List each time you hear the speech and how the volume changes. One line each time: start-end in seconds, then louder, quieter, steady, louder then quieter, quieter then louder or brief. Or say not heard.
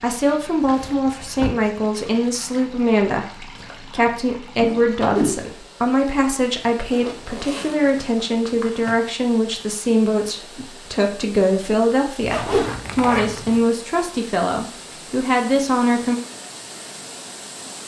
0.0-16.2 steady.